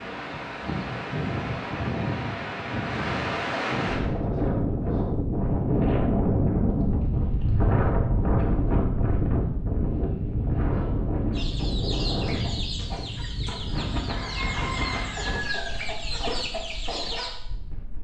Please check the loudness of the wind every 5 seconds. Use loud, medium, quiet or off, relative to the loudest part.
loud, loud, medium, quiet.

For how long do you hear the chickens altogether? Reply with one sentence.
You can hear the chickens for 6 seconds altogether.